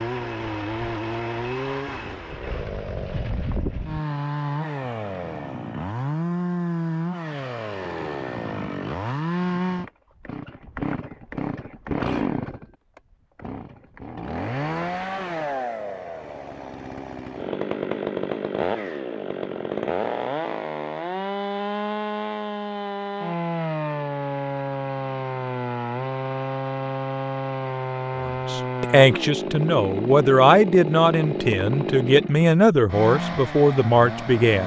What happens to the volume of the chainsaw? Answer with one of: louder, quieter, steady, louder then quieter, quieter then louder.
steady.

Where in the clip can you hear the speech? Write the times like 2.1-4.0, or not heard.
28.2-34.6.